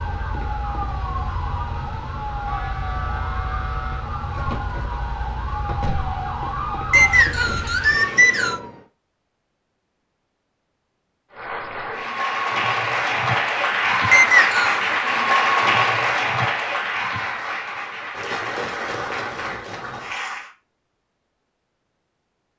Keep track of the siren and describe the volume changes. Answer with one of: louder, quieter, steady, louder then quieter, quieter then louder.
steady.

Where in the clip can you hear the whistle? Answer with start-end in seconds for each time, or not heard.
6.9-8.6, 14.1-14.8.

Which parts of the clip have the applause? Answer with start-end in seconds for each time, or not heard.
11.3-20.5.